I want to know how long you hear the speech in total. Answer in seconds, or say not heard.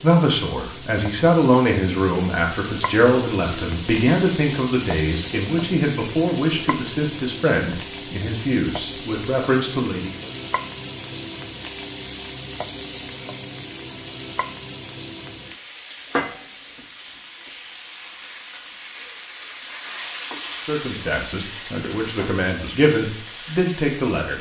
14 s.